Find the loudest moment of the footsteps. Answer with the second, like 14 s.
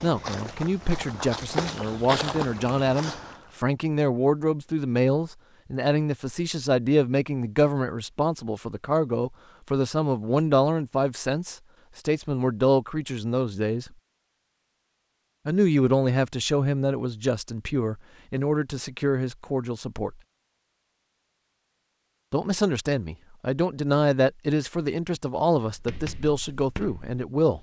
2 s.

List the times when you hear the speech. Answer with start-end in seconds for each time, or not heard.
0.0-13.9, 15.4-20.1, 22.3-27.5.